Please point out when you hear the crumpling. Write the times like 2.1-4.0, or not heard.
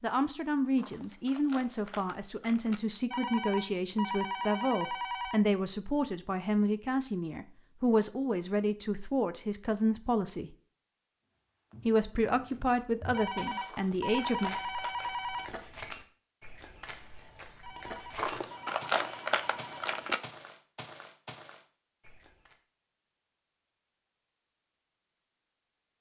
0.8-2.8, 13.7-15.4, 18.1-20.2.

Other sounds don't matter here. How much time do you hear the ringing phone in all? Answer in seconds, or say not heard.
7 s.